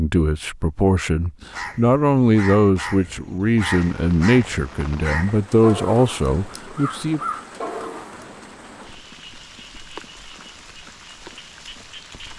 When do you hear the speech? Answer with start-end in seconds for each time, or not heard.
0.0-7.2.